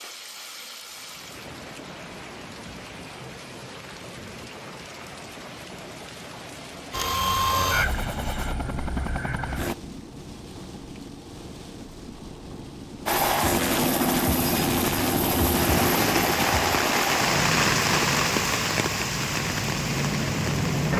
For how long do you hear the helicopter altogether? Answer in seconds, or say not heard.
11 s.